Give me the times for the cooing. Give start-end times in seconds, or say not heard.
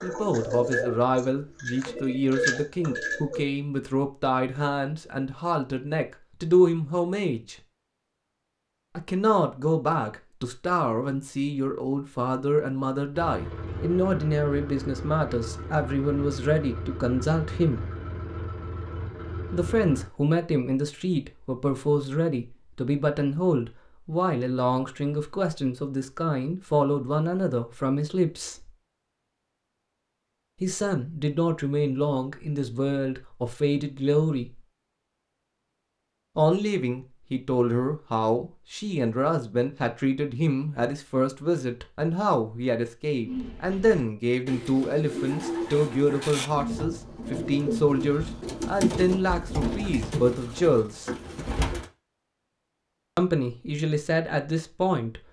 0.0-3.5, 43.2-51.9.